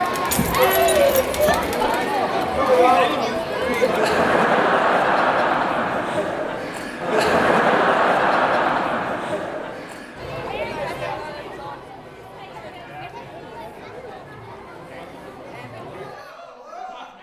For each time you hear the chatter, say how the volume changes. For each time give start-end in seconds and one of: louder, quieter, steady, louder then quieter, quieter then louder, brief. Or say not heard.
0.0-17.1 quieter.